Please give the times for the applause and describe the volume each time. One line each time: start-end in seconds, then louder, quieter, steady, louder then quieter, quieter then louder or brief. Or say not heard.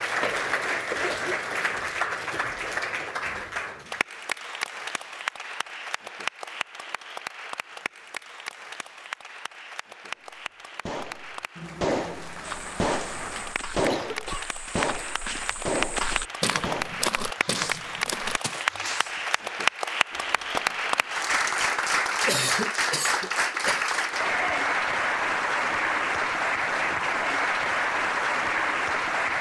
0.0-29.3 quieter then louder.